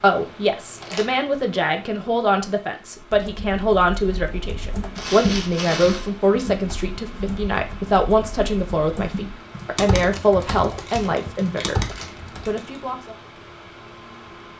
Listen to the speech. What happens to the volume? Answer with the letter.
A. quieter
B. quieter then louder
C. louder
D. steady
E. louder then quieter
D.